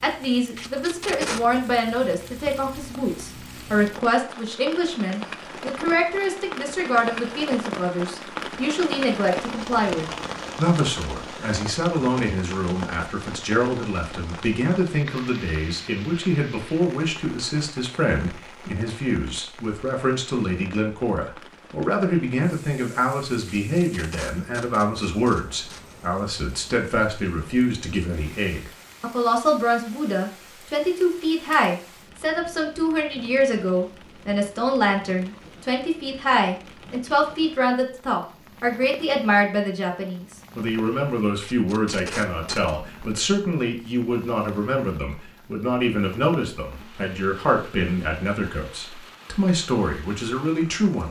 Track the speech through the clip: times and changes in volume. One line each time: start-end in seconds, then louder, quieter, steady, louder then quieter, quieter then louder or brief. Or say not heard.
0.0-51.0 steady.